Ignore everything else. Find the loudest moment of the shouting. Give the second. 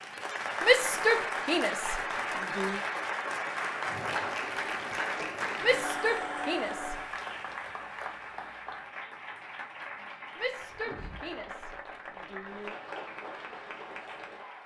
1 s.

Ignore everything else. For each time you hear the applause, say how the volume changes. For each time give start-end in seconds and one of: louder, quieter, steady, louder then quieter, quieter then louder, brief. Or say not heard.
0.0-14.6 quieter.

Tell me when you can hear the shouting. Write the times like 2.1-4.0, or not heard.
0.6-2.8, 5.6-7.0, 10.3-12.8.